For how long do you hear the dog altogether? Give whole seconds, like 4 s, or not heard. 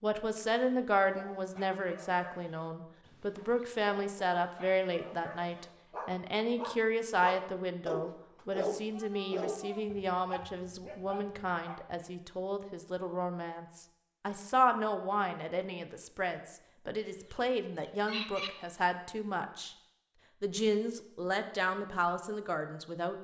11 s.